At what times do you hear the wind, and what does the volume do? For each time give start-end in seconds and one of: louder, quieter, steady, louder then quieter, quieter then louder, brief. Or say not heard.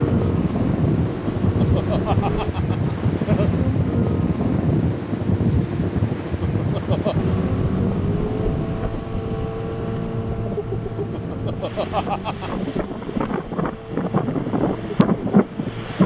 0.0-16.0 quieter then louder.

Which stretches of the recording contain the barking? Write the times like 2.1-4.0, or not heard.
not heard.